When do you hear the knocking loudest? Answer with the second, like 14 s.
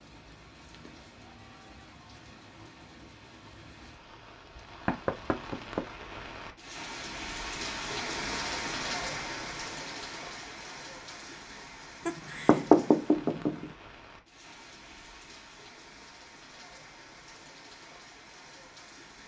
13 s.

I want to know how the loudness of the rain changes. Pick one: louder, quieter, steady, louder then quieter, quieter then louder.
louder then quieter.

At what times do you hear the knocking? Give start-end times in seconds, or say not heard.
4.8-5.8, 12.1-13.7.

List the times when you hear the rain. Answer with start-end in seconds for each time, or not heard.
0.0-19.2.